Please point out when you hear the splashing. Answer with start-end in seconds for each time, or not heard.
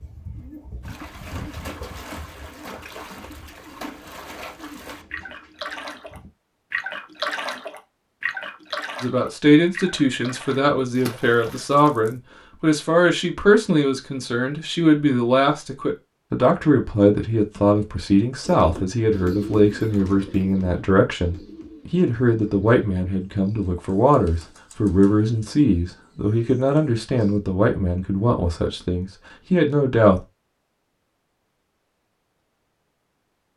0.8-12.2.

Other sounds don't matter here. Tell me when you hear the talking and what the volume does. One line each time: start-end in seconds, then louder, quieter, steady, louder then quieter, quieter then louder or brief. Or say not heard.
9.0-30.2 steady.